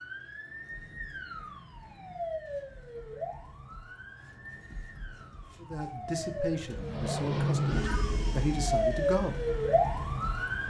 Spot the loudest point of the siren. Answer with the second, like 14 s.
9 s.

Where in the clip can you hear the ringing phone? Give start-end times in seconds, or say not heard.
not heard.